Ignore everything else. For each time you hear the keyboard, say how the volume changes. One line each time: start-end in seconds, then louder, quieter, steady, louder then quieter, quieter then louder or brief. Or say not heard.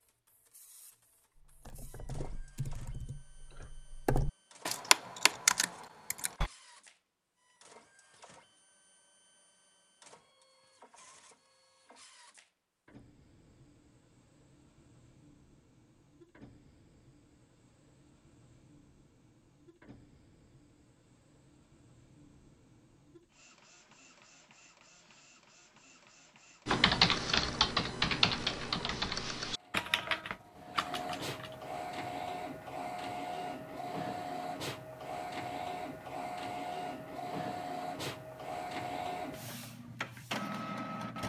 1.4-6.5 louder
26.6-31.6 quieter.